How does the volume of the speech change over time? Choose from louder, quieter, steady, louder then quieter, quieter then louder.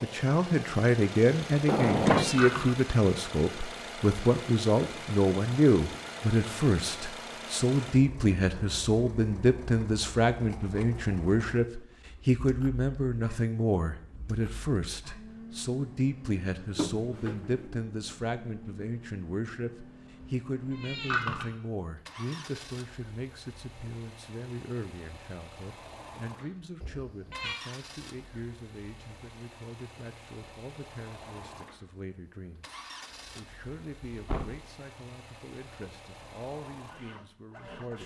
quieter.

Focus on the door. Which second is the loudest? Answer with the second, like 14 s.
2 s.